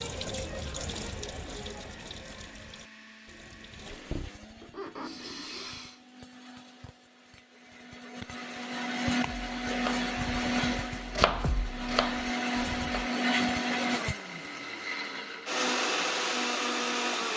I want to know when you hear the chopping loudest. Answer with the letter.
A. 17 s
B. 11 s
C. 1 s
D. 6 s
B.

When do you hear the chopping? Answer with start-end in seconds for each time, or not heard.
9.2-13.1.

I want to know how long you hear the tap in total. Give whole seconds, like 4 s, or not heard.
6 s.